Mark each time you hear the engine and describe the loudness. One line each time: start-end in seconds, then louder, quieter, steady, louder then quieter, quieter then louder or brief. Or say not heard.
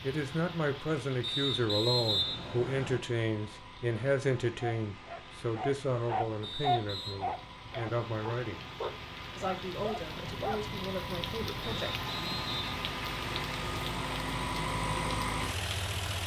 0.0-16.2 louder.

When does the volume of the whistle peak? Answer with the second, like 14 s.
2 s.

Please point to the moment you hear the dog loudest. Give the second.
7 s.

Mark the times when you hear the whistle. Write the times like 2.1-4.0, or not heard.
1.2-3.0, 6.4-7.2, 11.6-12.7.